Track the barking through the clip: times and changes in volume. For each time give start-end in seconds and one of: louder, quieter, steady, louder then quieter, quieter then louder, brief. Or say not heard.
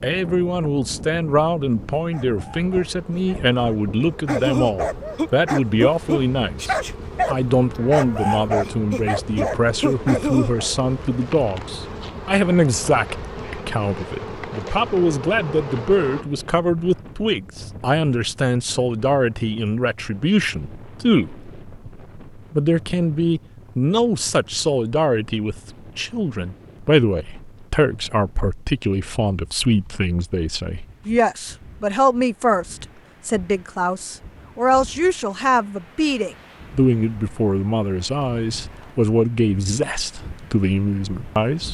1.9-10.7 louder.